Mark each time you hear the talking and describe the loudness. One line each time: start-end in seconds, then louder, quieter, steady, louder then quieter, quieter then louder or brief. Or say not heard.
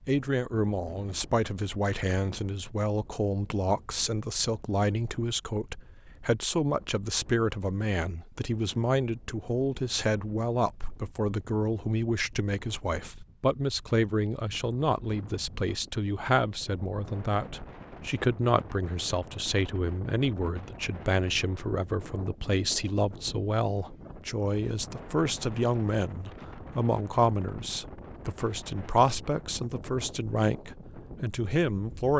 0.1-32.1 steady.